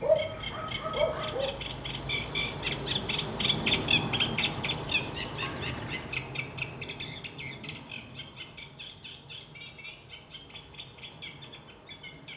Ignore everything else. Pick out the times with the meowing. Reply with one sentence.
You can hear the meowing from 5.4 to 6.2 s.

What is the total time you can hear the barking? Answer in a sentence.
The barking can be heard for 2 seconds in total.